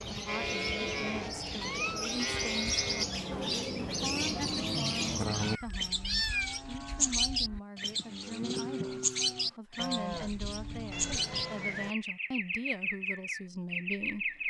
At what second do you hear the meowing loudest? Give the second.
6 s.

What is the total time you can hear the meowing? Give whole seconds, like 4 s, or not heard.
3 s.